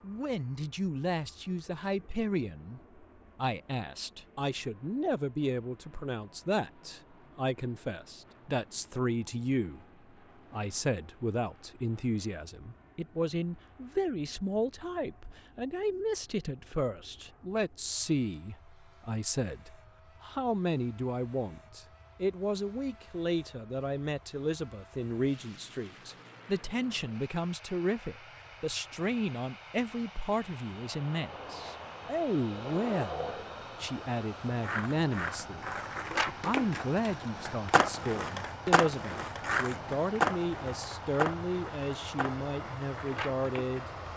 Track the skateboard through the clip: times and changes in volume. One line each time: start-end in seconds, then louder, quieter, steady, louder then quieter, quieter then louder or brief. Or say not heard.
30.7-44.0 louder then quieter.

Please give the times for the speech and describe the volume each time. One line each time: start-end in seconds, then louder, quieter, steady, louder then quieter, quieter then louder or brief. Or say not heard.
0.0-9.8 steady
10.5-43.9 steady.